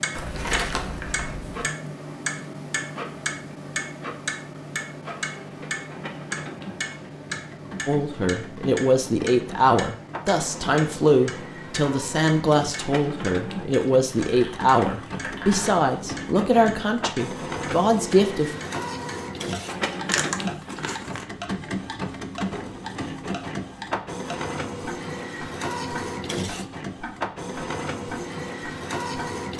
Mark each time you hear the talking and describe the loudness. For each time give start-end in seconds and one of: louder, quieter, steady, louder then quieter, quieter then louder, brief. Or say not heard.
7.8-18.6 steady.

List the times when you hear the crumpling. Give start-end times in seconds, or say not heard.
0.1-1.6, 14.1-15.8, 20.1-21.2.